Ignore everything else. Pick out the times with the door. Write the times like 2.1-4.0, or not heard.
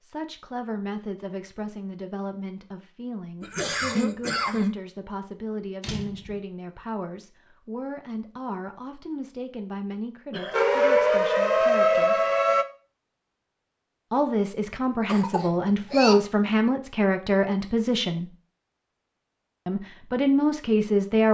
5.8-6.4.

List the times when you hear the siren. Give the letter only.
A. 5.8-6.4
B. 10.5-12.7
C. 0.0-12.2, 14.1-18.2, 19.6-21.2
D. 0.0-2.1
B.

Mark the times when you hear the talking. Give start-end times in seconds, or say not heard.
0.0-12.2, 14.1-18.2, 19.6-21.2.